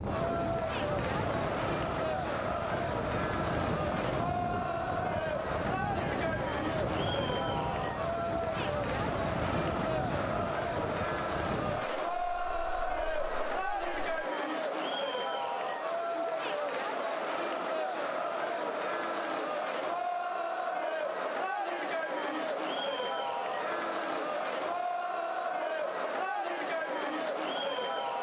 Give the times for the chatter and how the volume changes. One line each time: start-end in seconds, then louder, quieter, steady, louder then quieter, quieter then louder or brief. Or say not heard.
0.0-28.1 steady.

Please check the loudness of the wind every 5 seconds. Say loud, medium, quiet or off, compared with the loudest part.
loud, loud, loud, off, off, off.